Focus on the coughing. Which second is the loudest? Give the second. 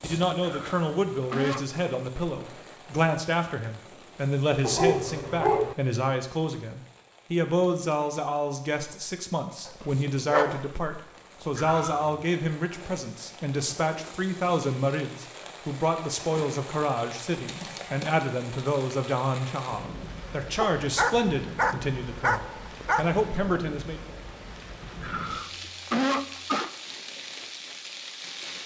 26 s.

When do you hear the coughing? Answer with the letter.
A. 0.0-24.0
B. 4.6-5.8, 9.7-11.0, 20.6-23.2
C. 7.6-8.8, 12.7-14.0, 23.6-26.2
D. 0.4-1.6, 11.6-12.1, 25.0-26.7
D.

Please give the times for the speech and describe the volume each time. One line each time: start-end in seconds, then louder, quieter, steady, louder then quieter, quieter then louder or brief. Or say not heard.
0.0-24.0 steady.